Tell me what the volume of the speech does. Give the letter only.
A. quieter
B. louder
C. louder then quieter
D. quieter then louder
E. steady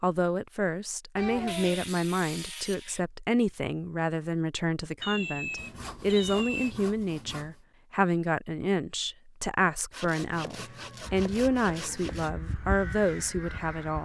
E.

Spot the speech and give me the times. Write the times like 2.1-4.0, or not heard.
0.0-14.0.